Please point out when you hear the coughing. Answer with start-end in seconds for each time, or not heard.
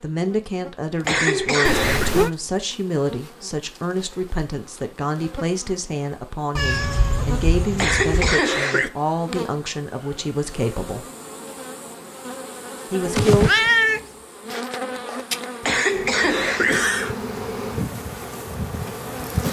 1.1-2.1, 7.8-8.9, 15.6-17.1.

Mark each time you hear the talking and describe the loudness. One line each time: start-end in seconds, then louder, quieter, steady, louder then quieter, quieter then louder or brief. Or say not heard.
0.0-11.1 steady
12.9-13.5 brief.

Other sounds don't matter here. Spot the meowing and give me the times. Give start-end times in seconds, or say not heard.
1.6-2.3, 6.5-8.4, 13.0-14.0.